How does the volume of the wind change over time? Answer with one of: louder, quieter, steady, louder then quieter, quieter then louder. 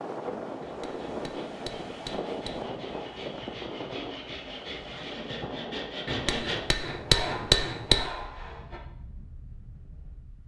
quieter.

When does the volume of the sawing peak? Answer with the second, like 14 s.
6 s.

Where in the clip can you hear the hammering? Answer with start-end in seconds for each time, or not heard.
0.6-2.6, 6.0-8.1.